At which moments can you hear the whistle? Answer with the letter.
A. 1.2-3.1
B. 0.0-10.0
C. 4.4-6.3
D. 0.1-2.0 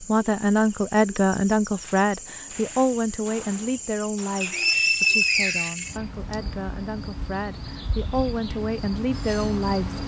C.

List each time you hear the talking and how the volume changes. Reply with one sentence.
The talking can be heard from 0.0 to 10.0 s, getting quieter then louder.